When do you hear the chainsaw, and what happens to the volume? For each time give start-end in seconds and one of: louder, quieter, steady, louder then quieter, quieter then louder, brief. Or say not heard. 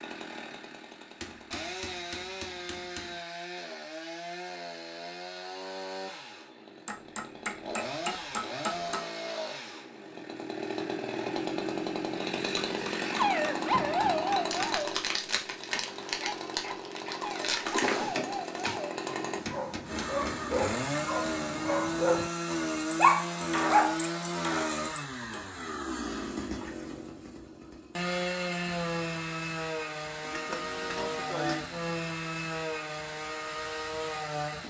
0.0-34.6 louder.